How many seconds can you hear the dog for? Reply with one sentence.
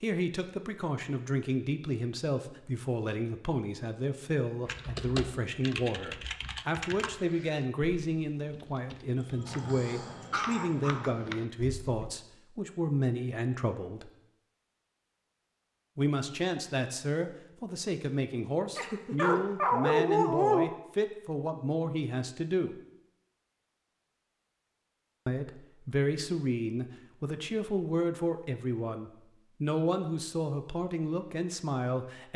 The dog can be heard for 4 seconds in total.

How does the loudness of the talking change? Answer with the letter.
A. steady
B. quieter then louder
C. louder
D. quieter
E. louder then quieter
A.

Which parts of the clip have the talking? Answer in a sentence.
The talking can be heard from 0.0 to 14.1 s, from 15.9 to 22.8 s and from 25.2 to 32.3 s.